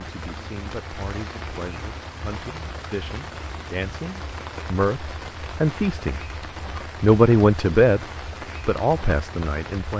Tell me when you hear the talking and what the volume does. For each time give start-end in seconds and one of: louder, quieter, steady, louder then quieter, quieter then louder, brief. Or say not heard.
0.0-6.2 louder
7.0-8.1 brief
8.7-9.9 brief.